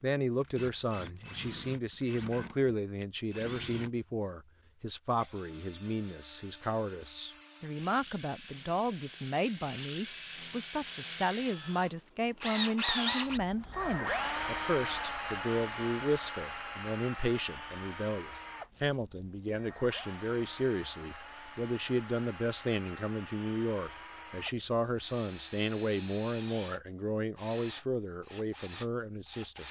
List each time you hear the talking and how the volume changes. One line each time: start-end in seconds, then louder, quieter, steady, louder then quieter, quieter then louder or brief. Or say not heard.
0.0-29.6 steady.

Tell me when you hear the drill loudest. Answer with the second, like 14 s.
13 s.